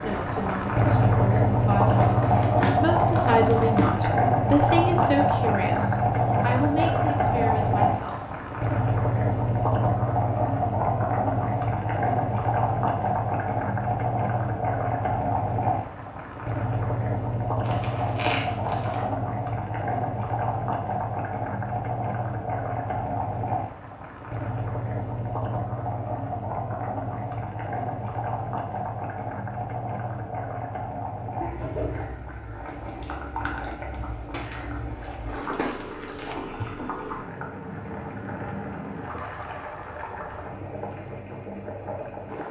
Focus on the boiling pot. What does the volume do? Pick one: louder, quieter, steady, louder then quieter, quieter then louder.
quieter.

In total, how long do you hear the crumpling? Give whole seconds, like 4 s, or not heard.
6 s.